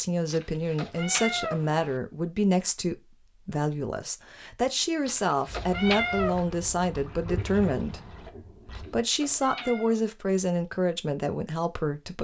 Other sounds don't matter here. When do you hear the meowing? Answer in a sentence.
The meowing can be heard from 0.3 to 1.9 s, from 5.0 to 6.5 s and from 8.7 to 10.0 s.